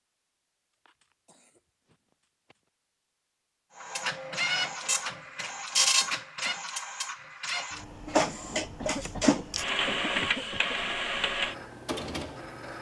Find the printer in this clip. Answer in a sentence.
The printer can be heard from 3.8 to 12.7 s.